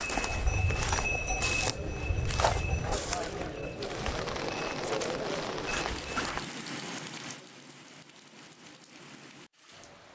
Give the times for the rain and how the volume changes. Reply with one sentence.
You can hear the rain from 3.8 to 10.1 s, getting quieter.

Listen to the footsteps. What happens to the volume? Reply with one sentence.
The volume of the footsteps goes down.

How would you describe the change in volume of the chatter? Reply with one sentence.
The loudness of the chatter goes up.